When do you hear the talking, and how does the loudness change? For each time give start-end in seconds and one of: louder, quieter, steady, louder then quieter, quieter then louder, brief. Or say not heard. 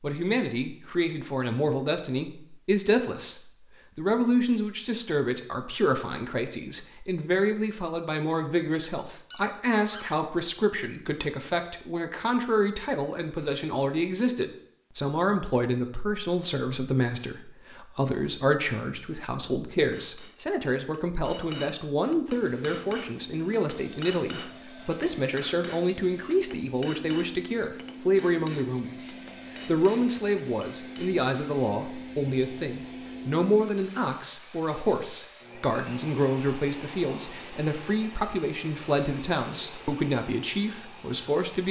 0.0-41.6 steady.